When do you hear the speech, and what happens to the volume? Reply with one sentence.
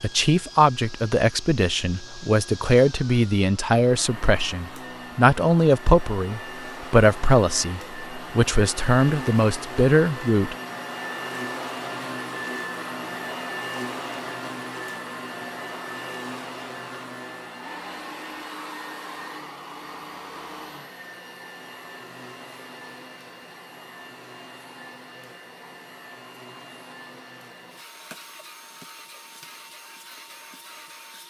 The speech can be heard from 0.0 to 10.6 s, at a steady volume.